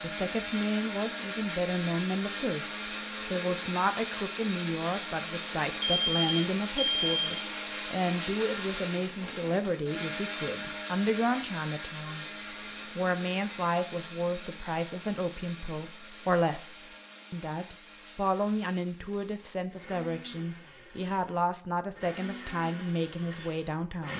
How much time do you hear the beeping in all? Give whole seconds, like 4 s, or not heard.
3 s.